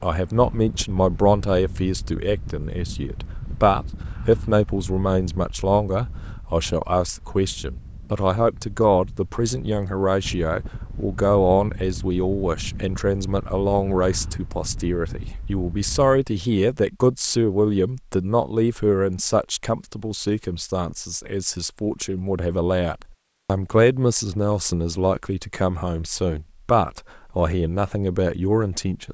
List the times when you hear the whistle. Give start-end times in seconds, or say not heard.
not heard.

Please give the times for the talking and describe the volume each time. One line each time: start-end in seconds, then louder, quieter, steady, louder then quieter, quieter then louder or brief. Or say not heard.
0.0-29.0 steady.